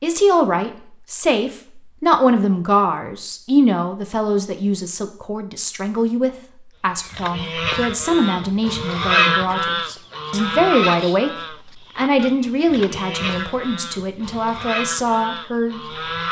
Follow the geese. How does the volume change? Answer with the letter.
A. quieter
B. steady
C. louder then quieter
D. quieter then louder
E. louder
C.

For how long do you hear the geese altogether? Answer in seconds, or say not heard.
9 s.